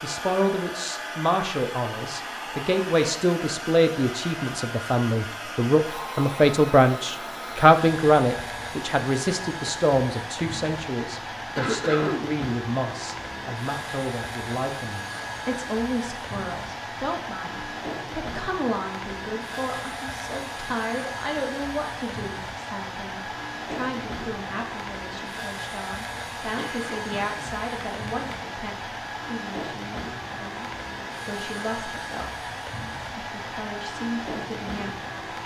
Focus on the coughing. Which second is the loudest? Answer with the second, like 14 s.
12 s.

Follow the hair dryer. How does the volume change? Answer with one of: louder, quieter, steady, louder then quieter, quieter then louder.
steady.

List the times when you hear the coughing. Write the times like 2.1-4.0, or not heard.
11.6-12.3, 26.6-28.4.